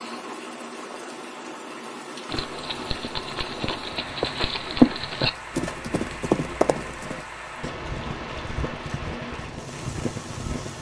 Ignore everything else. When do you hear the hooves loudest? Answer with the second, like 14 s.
5 s.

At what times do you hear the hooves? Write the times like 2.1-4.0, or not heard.
2.2-10.7.